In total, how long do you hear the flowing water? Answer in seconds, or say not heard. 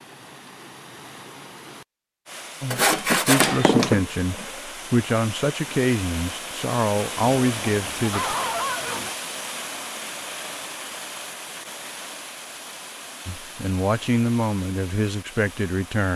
16 s.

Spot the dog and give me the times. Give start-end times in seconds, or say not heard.
7.4-9.1.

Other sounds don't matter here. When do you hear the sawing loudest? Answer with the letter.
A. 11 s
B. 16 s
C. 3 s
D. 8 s
C.